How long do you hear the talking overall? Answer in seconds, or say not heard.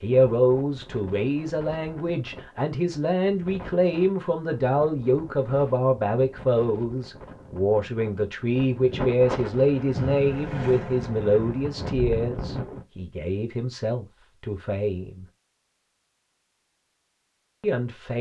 16 s.